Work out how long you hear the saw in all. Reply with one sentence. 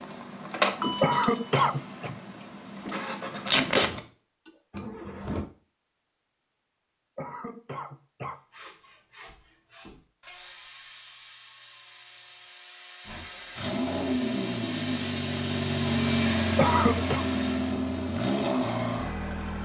The saw can be heard for 9 seconds in total.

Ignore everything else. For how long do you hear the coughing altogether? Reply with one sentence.
The coughing can be heard for 3 seconds in total.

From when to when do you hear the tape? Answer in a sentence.
You can hear the tape from 3.5 to 3.9 s.